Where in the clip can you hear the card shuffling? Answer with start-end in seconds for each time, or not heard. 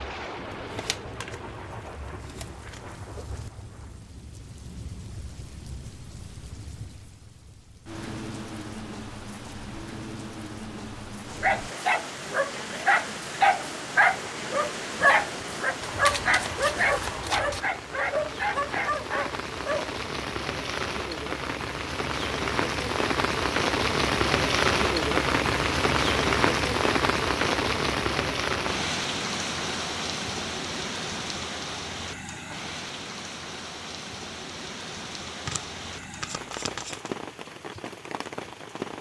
0.5-3.0, 15.8-17.6, 35.5-37.1.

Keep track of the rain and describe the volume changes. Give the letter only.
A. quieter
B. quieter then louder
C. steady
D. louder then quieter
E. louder
D.